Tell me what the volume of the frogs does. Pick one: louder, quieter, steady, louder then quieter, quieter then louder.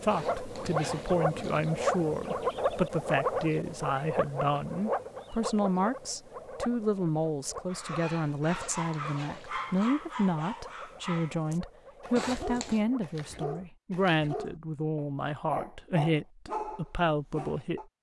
quieter.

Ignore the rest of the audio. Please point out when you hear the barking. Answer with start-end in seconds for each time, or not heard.
7.7-17.9.